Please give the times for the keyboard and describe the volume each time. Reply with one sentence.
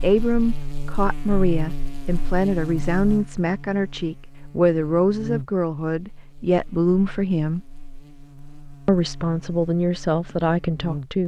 The keyboard can't be heard in this clip.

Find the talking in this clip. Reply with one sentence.
You can hear the talking from 0.0 to 7.6 s and from 8.8 to 11.2 s.